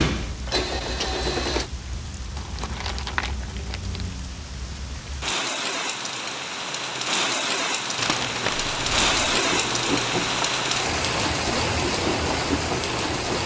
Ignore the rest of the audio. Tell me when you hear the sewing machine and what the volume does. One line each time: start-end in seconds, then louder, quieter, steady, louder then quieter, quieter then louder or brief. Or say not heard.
0.0-1.7 brief
8.5-13.4 quieter then louder.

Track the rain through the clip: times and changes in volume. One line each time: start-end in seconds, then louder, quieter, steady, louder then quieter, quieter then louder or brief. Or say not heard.
0.0-13.4 louder.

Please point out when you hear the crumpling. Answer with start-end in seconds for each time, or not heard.
2.4-4.2, 8.0-8.7.